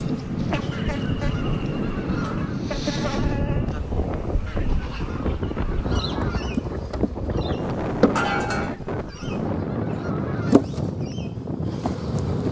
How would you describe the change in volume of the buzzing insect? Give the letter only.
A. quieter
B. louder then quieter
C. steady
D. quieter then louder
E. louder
E.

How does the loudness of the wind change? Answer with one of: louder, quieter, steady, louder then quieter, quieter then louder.
steady.